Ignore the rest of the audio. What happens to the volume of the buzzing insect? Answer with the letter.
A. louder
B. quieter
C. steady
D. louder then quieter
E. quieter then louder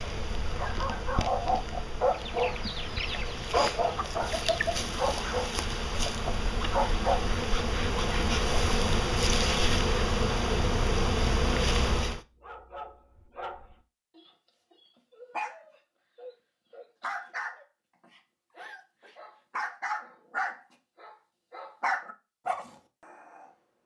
A.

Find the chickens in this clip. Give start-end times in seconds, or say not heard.
2.1-4.8.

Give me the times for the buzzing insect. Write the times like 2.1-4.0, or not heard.
0.0-12.2.